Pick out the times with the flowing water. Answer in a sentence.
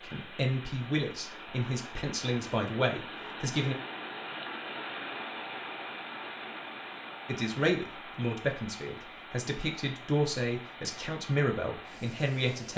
The flowing water can be heard from 0.0 to 12.7 s.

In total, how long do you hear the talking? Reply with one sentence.
You can hear the talking for 9 seconds altogether.